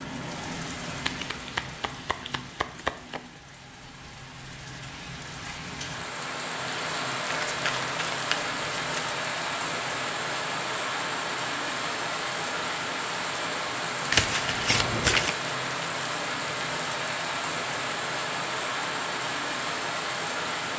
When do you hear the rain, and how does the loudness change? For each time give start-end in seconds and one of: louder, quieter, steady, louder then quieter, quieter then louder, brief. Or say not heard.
0.0-20.7 louder.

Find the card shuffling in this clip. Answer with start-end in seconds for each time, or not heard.
1.1-3.3, 7.5-9.1, 14.1-15.3.